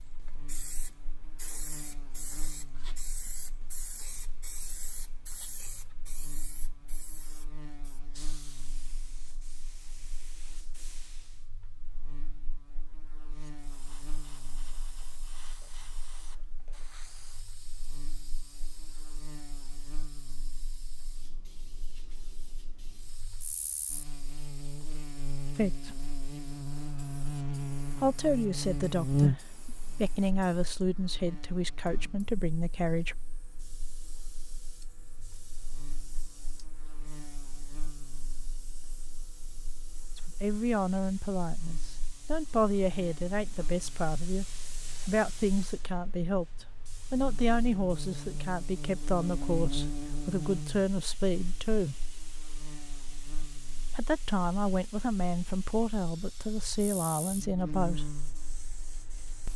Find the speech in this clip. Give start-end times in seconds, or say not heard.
25.6-26.0, 27.9-33.1, 40.1-52.0, 53.9-58.2.